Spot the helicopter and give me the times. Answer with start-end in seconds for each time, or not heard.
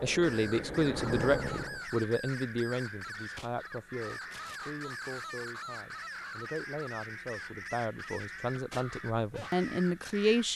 0.0-1.9.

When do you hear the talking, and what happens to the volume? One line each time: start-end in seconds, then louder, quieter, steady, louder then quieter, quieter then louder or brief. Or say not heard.
0.0-10.5 quieter then louder.